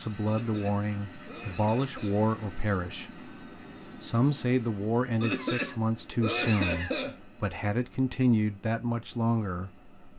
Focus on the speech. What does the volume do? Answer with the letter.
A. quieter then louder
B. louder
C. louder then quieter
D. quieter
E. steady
E.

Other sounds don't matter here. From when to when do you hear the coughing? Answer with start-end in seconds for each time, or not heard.
0.2-2.2, 5.2-7.2.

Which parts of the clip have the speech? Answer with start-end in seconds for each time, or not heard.
0.0-3.2, 4.0-9.9.